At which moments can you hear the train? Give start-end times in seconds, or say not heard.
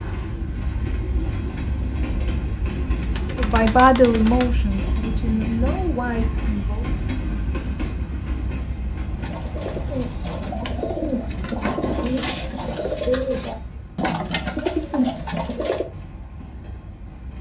0.0-17.3.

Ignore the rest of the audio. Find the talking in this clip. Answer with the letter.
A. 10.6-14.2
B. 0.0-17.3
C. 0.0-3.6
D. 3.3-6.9
D.